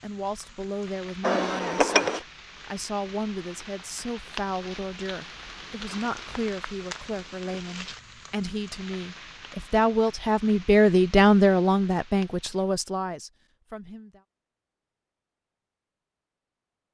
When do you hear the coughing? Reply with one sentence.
You can hear the coughing from 1.2 to 2.2 s.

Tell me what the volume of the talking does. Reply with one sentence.
The volume of the talking goes up.